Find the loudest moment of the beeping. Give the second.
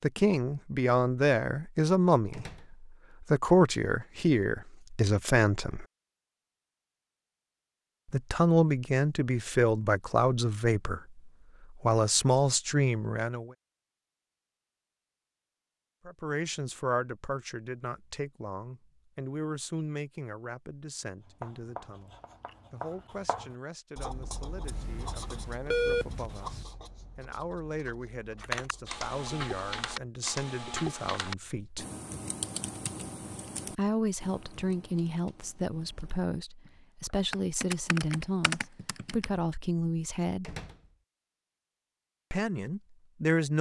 26 s.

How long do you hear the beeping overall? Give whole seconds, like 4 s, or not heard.
2 s.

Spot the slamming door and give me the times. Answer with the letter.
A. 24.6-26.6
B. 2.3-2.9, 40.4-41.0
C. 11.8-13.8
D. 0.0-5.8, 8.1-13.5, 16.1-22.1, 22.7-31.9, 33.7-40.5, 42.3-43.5
B.